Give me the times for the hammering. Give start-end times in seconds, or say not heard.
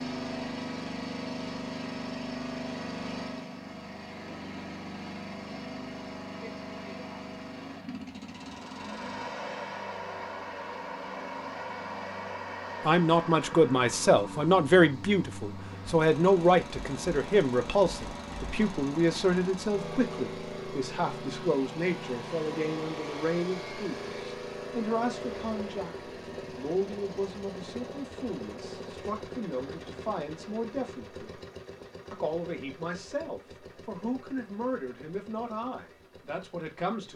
not heard.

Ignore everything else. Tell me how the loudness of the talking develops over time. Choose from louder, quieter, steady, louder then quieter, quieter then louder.
quieter.